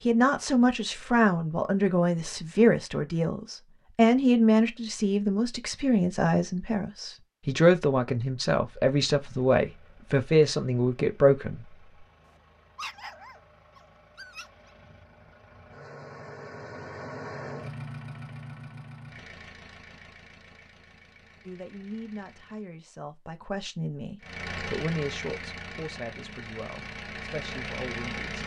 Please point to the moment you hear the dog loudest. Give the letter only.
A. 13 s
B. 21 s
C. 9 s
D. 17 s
A.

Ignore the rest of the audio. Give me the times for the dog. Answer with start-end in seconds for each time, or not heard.
12.8-14.7.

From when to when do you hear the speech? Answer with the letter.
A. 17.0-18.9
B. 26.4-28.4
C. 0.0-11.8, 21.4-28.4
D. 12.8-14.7
C.